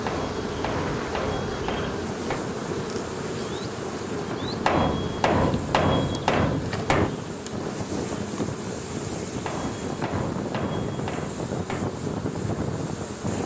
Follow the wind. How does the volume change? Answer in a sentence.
The volume of the wind goes up.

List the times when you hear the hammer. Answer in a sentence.
The hammer can be heard from 0.1 to 2.5 s, from 4.7 to 7.2 s and from 9.4 to 11.9 s.